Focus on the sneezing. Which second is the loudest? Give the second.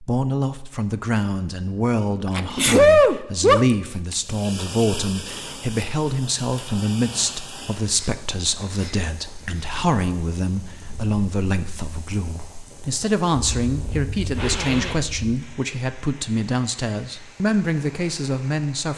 3 s.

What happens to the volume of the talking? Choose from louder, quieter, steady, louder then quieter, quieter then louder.
steady.